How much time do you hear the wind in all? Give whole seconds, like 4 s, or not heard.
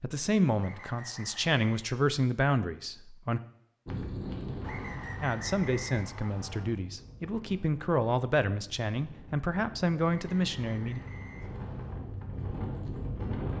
10 s.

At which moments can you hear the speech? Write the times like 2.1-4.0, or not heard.
0.0-3.4, 5.2-11.0.